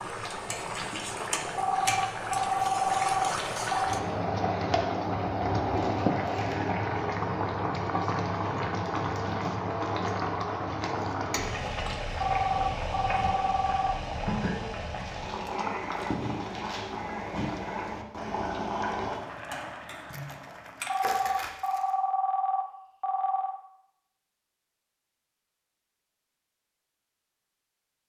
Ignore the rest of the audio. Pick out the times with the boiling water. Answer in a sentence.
The boiling water can be heard from 0.0 to 21.0 s.